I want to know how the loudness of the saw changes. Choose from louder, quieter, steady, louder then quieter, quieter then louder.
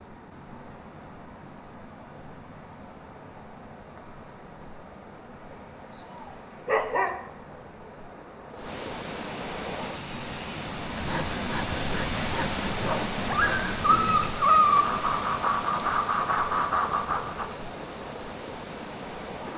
louder.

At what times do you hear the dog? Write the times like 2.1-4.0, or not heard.
6.0-7.2, 12.8-14.8.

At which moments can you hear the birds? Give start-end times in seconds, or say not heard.
not heard.